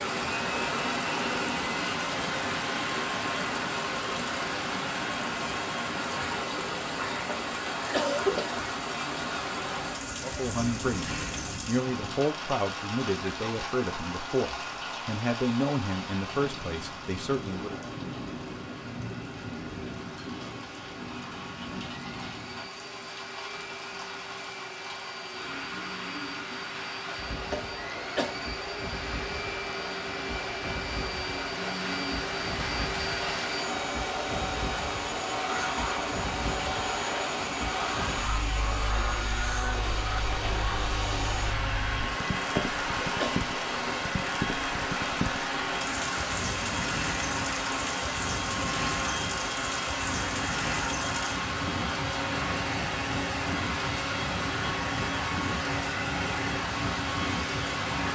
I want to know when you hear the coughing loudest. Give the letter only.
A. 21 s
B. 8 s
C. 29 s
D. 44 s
B.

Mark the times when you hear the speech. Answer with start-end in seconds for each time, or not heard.
10.2-17.8.